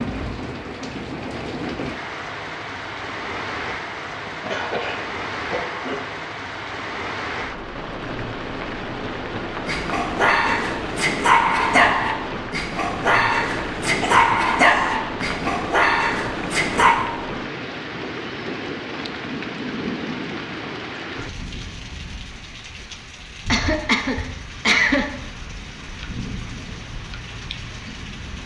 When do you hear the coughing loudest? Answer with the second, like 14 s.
25 s.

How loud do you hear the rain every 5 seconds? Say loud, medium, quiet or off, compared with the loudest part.
loud, loud, loud, loud, medium, medium.